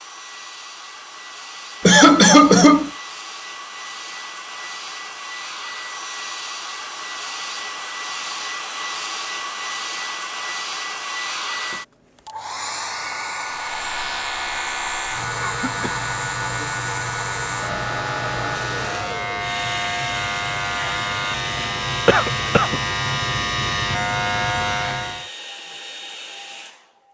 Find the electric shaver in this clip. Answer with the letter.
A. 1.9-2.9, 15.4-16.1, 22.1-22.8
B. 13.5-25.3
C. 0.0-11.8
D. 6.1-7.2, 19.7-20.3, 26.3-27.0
B.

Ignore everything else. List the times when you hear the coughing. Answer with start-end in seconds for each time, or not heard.
1.9-2.9, 15.4-16.1, 22.1-22.8.